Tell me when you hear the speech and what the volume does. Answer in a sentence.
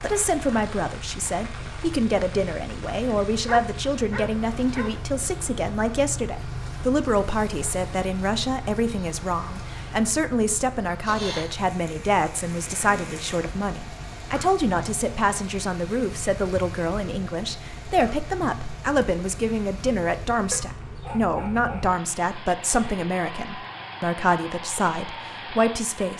The speech can be heard from 0.0 to 26.1 s, at a steady volume.